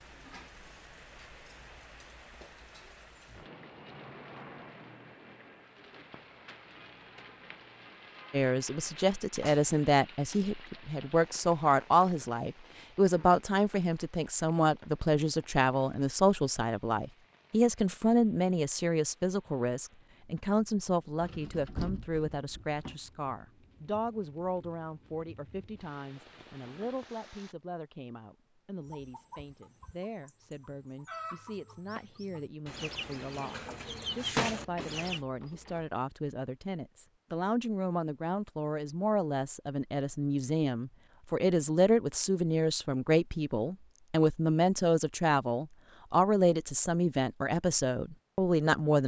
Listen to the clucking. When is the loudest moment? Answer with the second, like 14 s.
34 s.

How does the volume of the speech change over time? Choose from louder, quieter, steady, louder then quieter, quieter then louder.
quieter then louder.